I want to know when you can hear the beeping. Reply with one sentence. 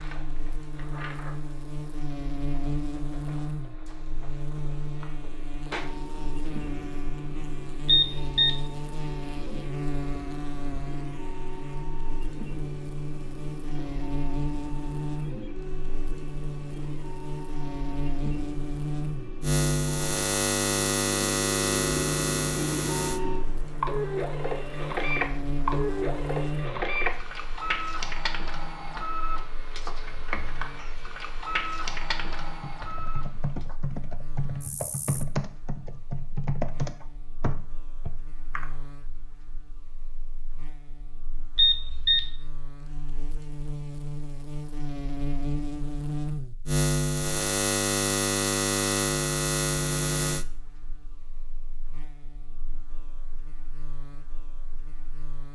The beeping can be heard from 7.8 to 8.6 s and from 41.5 to 42.3 s.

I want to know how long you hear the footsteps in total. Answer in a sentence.
You can't hear the footsteps here.